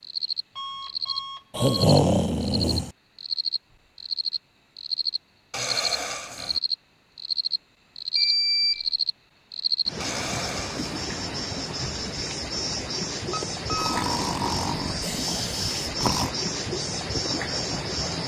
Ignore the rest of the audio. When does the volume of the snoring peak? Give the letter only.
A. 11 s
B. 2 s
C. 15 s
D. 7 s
B.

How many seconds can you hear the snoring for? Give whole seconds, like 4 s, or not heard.
6 s.